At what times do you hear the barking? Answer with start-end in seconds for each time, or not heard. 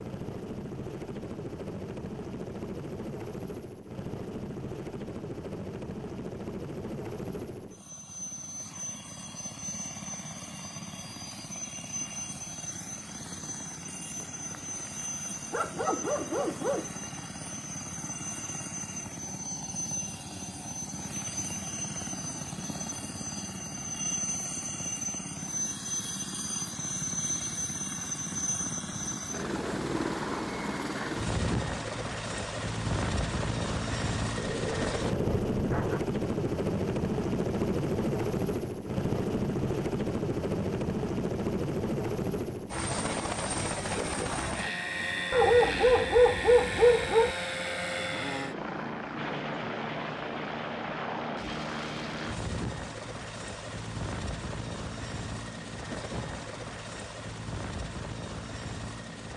14.2-17.1, 34.4-36.0, 45.3-47.4.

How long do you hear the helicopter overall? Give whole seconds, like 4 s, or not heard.
59 s.